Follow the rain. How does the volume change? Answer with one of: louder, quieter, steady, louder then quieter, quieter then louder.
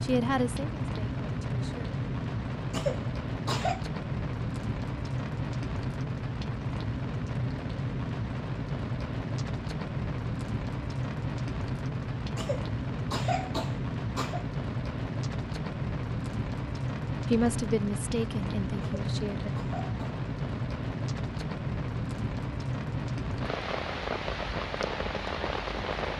steady.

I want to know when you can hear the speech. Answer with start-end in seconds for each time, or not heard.
0.0-1.9, 17.3-19.5.